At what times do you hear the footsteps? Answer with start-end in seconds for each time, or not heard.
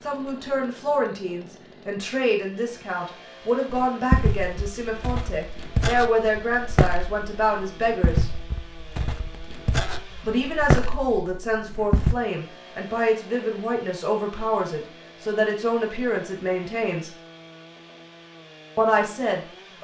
3.7-12.2.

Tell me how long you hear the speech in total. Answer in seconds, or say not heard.
16 s.